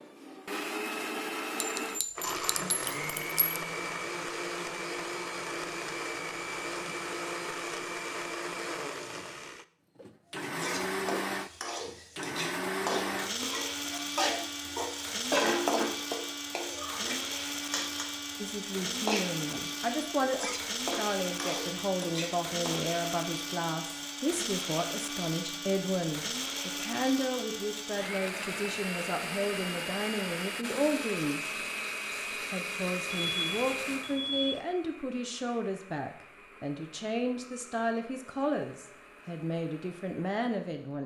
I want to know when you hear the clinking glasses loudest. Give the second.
2 s.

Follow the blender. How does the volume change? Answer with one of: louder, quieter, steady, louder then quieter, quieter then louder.
quieter.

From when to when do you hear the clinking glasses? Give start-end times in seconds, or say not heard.
1.6-3.6.